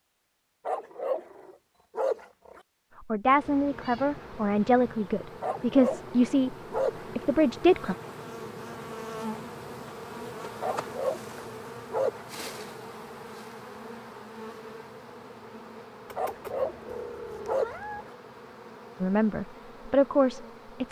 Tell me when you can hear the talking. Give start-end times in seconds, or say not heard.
3.1-6.5, 7.2-8.0, 19.0-20.8.